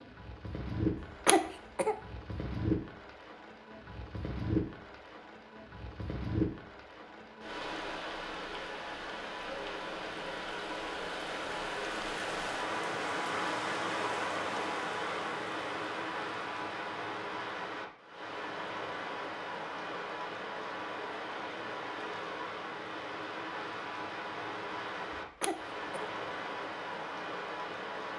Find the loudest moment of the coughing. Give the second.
1 s.